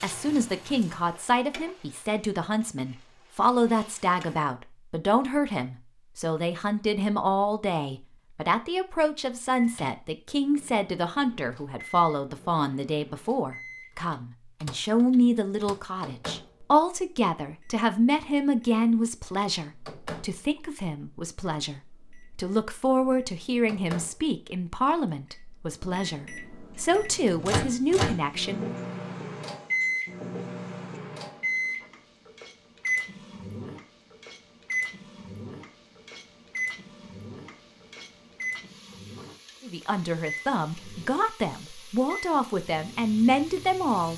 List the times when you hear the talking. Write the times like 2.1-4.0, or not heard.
0.0-28.8, 39.6-44.1.